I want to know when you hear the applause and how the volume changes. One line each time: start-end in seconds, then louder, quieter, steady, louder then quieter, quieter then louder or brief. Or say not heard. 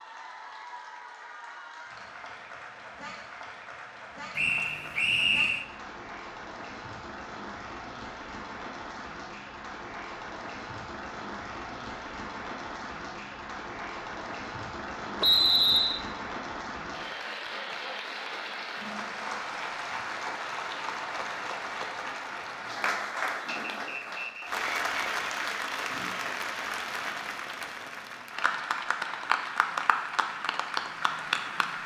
0.0-31.8 louder.